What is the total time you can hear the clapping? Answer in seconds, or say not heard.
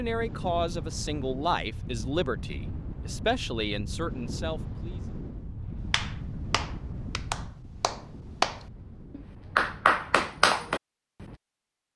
5 s.